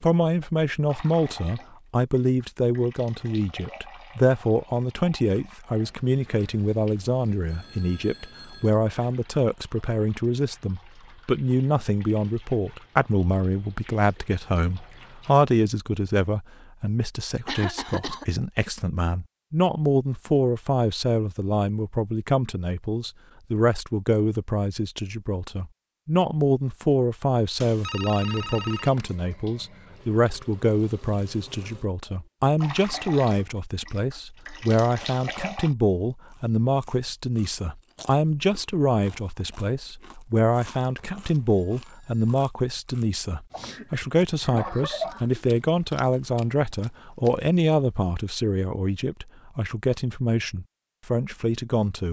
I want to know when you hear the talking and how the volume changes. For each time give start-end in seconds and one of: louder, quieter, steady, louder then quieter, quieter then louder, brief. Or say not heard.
0.0-52.0 steady.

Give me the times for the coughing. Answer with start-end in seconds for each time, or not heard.
17.4-18.2, 43.5-45.4.